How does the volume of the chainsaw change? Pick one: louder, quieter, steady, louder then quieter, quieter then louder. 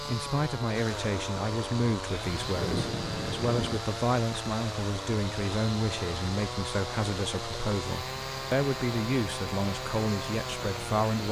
steady.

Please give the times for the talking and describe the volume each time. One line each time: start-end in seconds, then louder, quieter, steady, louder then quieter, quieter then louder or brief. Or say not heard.
0.1-11.2 steady.